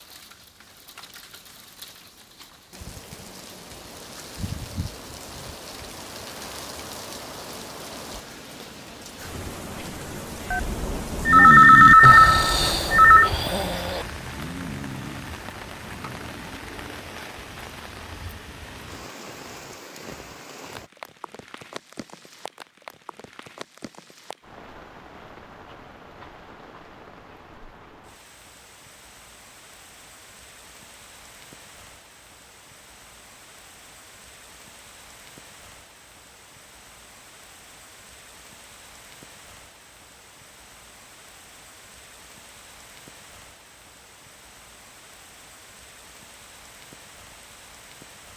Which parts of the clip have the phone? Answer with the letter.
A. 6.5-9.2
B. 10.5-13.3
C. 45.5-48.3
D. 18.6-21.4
B.